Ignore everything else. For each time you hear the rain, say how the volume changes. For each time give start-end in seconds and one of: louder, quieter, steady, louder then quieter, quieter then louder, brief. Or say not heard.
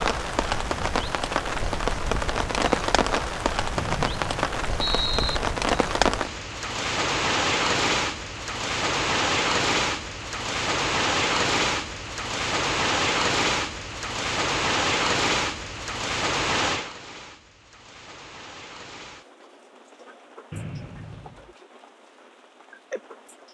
0.0-23.4 quieter.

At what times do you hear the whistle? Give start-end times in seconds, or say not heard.
3.8-5.4, 20.5-21.6.